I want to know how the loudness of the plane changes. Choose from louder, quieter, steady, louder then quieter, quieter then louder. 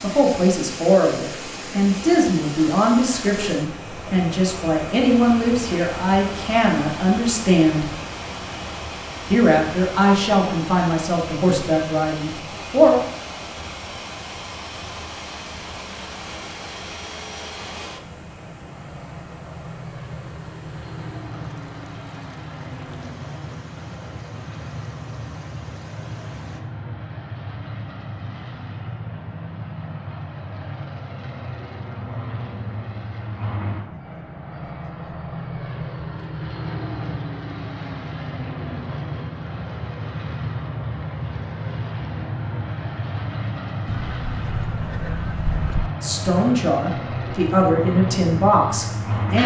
louder.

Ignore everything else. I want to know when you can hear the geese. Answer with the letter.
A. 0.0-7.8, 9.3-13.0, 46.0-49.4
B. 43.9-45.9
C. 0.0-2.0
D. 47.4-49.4
B.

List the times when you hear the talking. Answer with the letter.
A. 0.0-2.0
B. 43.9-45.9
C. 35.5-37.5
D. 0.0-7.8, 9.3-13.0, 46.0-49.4
D.